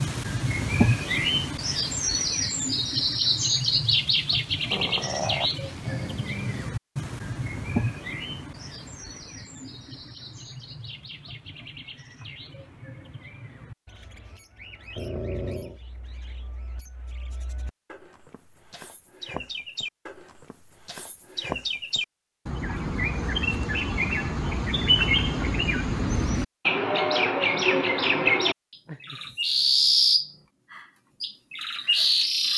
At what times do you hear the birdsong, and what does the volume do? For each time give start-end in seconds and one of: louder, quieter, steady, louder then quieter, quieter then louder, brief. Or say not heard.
0.0-32.5 quieter then louder.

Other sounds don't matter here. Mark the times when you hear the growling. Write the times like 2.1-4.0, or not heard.
4.7-6.7, 14.9-15.8, 28.9-30.4.